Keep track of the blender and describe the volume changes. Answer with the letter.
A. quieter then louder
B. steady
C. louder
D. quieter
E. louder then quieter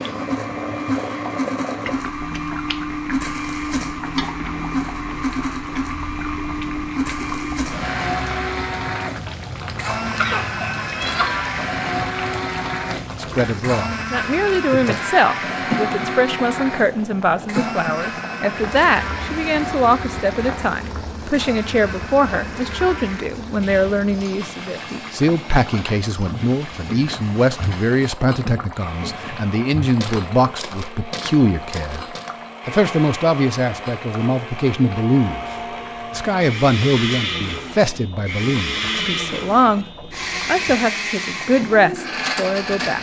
A.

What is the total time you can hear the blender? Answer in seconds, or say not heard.
43 s.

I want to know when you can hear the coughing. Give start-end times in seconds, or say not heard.
10.2-11.4.